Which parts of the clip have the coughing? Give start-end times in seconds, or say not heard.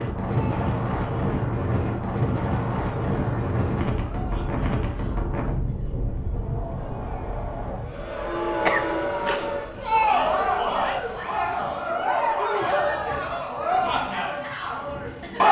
8.6-9.6.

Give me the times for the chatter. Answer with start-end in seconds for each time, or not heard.
0.2-15.4.